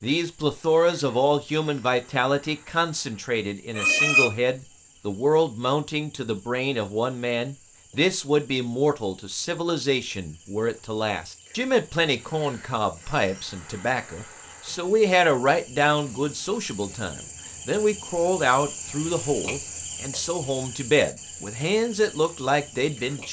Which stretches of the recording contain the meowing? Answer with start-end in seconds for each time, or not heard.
3.8-4.3.